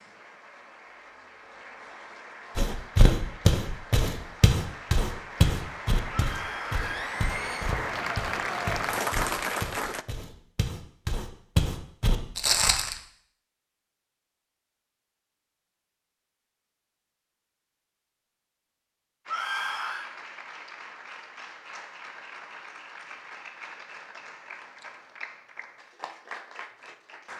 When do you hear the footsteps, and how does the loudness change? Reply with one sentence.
You can hear the footsteps from 2.5 to 12.9 s, getting quieter then louder.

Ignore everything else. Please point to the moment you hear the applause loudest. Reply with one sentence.
The loudest moment of the applause is at 9 seconds.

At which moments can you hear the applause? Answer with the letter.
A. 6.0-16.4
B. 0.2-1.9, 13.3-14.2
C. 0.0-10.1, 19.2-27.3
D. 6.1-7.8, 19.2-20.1
C.